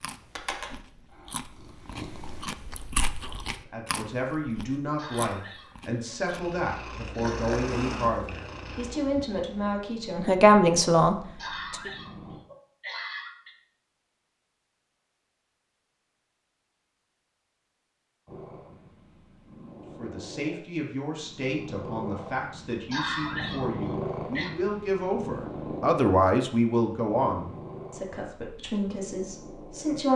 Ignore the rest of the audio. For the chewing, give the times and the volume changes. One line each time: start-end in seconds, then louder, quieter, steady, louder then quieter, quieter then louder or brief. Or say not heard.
0.0-6.5 louder then quieter.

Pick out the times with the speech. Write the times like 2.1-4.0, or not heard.
3.6-11.9, 19.9-30.1.